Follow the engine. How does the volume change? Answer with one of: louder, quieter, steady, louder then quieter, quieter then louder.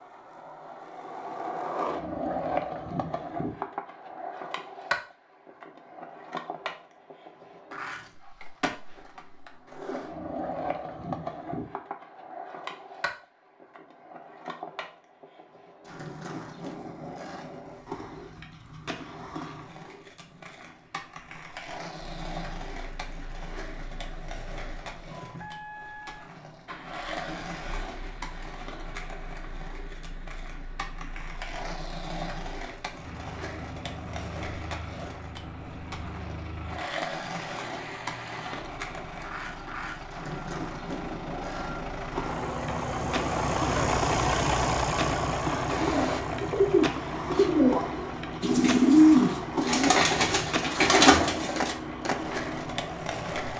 louder then quieter.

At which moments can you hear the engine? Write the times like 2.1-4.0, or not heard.
21.9-53.5.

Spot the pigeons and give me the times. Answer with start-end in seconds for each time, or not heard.
45.6-51.8.